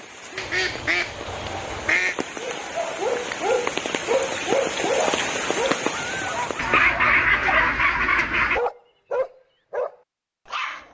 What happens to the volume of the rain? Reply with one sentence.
The loudness of the rain goes up.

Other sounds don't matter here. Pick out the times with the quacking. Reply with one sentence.
The quacking can be heard from 0.3 to 2.1 s and from 6.5 to 8.6 s.